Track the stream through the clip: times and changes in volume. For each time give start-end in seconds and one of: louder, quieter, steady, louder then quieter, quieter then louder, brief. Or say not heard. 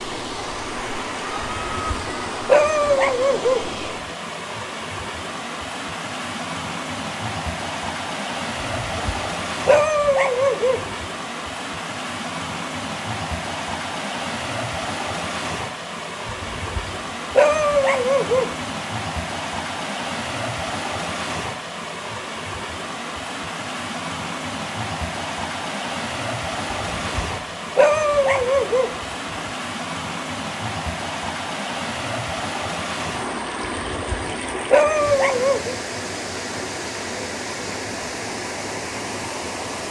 0.0-39.8 steady.